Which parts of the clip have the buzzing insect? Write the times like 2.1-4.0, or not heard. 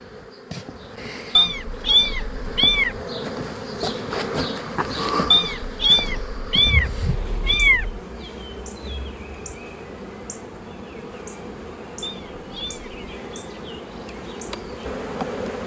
0.0-15.6.